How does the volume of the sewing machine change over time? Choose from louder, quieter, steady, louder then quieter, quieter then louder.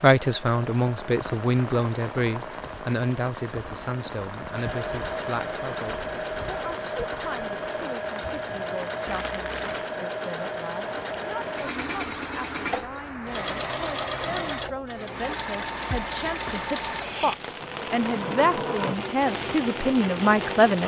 louder.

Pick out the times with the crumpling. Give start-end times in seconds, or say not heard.
9.1-9.9.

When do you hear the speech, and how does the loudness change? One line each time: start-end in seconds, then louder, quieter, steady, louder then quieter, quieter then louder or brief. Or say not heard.
0.0-20.8 quieter then louder.